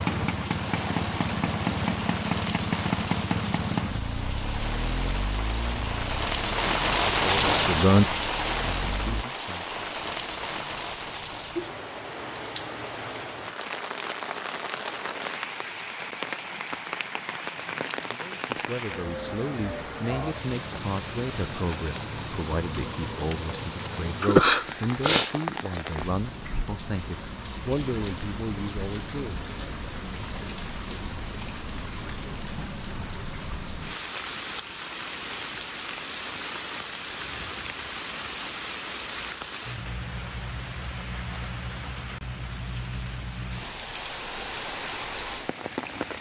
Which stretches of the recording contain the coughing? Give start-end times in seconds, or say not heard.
24.2-25.4.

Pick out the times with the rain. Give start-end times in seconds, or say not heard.
0.0-46.1.